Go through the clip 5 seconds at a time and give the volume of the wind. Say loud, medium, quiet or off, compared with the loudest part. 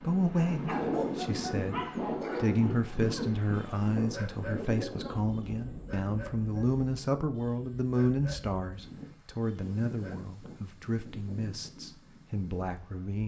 loud, medium, quiet.